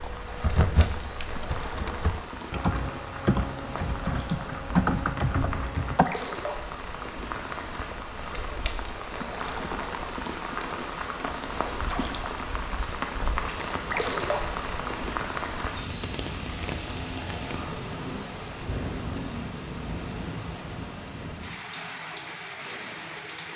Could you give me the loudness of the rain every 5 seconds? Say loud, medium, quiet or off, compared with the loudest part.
medium, loud, loud, loud, medium.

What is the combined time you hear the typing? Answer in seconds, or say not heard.
6 s.